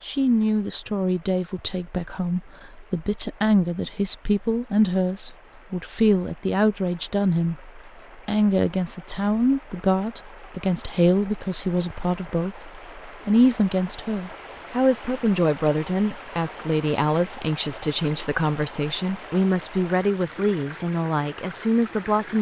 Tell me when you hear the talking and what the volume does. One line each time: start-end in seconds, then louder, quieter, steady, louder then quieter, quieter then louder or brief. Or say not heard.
0.0-22.3 steady.